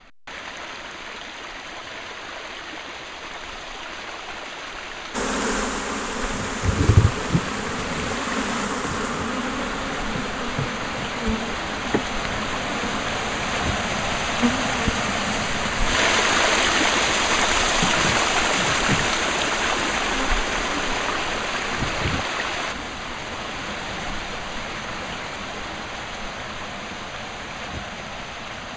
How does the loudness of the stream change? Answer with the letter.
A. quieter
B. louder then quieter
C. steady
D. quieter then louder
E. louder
B.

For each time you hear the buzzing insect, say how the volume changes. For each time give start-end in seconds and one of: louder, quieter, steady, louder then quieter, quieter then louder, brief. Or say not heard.
5.1-22.2 quieter.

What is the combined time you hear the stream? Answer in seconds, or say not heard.
29 s.